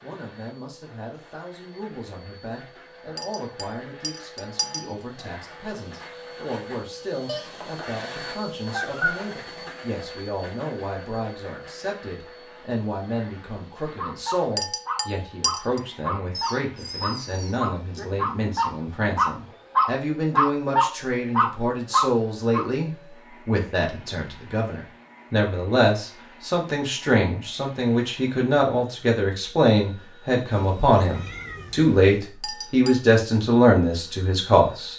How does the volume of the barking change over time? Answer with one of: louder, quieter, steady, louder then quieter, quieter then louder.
louder.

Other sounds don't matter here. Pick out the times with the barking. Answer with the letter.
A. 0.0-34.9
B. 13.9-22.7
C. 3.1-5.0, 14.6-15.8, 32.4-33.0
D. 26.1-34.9
B.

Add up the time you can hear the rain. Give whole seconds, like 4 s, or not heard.
not heard.